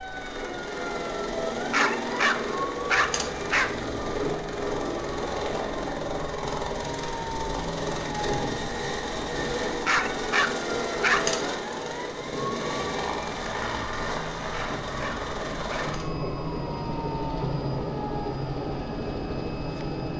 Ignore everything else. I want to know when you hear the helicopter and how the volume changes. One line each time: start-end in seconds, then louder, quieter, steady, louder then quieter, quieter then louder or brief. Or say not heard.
0.0-20.1 steady.